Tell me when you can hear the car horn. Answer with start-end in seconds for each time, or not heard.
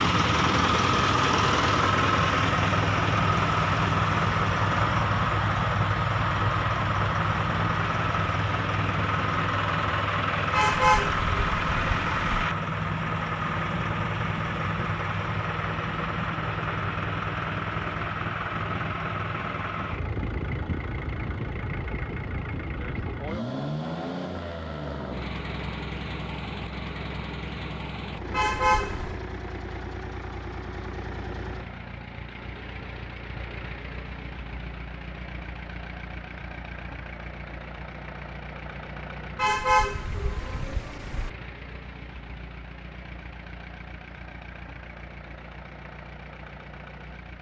10.5-12.2, 28.3-29.1, 39.4-41.3.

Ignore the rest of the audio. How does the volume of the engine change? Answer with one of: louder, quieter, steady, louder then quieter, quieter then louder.
quieter.